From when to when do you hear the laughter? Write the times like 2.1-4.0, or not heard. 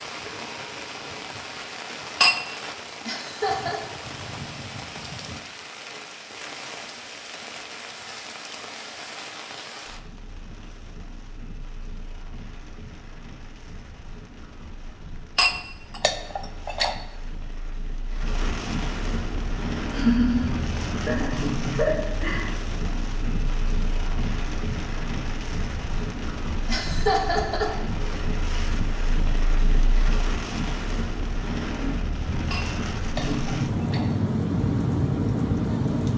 3.0-3.8, 19.9-22.4, 26.6-27.7.